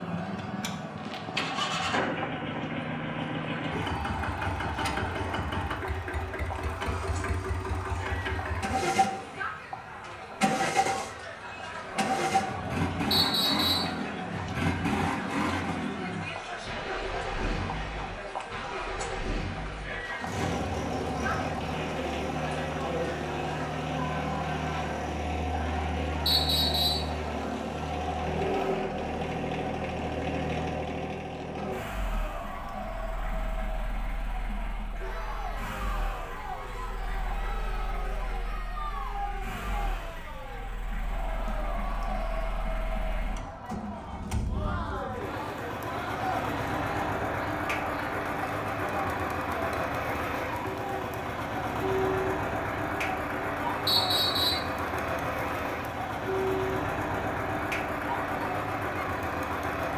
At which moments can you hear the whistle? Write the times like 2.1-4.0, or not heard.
13.1-13.9, 26.2-27.1, 53.9-54.6.